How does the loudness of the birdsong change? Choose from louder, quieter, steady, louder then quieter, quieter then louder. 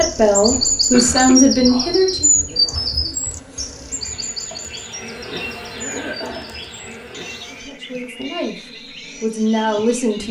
quieter.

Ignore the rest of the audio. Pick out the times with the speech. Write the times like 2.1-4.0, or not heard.
0.0-2.4, 7.5-10.2.